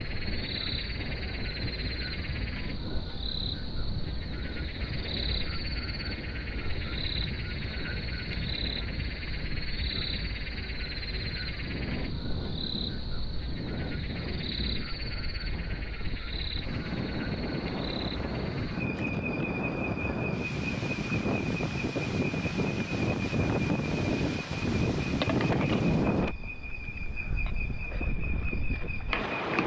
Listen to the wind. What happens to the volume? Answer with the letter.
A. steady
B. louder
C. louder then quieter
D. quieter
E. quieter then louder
B.